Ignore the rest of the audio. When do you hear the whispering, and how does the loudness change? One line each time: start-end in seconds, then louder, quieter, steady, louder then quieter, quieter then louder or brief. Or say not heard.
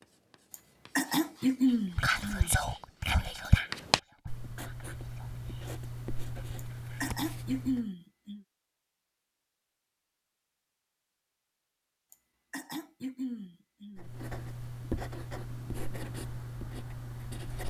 1.6-7.2 quieter.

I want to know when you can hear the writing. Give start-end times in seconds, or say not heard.
0.0-7.8, 13.9-17.6.